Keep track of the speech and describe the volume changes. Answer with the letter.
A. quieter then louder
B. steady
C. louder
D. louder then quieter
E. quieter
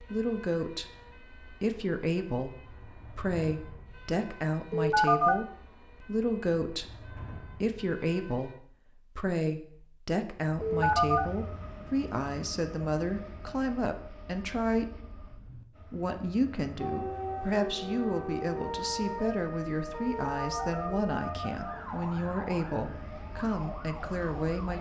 B.